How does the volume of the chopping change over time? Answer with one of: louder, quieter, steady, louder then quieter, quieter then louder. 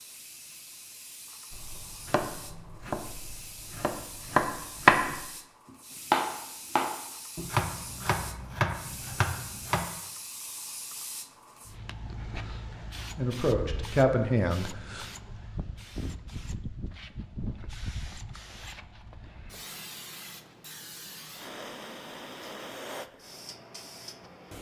louder then quieter.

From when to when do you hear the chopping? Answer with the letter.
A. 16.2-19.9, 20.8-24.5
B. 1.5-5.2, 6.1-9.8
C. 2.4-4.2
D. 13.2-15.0
B.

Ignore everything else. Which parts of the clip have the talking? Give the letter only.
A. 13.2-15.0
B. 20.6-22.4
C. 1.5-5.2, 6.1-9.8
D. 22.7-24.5
A.